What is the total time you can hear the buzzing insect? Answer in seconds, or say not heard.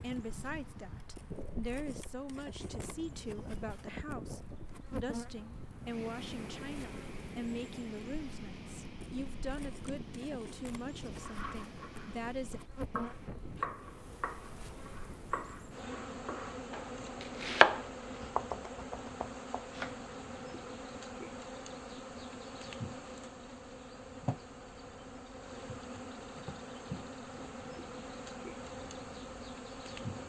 30 s.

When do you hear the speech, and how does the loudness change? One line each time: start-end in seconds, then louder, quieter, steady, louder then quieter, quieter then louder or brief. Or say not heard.
0.0-12.6 steady.